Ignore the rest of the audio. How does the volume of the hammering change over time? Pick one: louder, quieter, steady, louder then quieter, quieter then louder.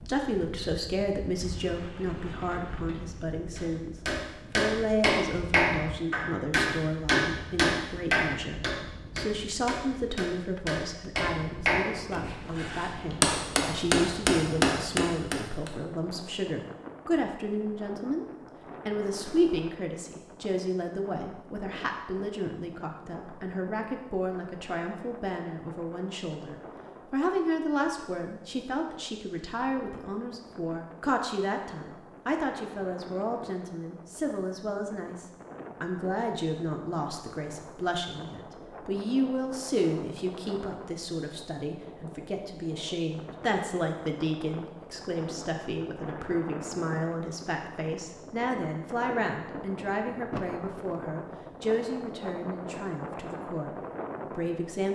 quieter then louder.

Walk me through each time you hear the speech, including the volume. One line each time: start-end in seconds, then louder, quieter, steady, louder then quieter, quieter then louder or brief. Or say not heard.
0.1-18.2 steady
18.9-54.9 steady.